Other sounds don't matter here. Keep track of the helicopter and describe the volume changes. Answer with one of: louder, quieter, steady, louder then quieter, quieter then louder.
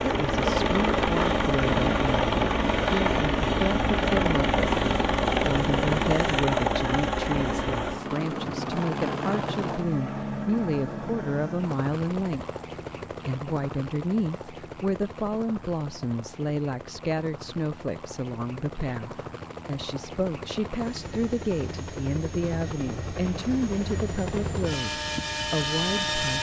quieter then louder.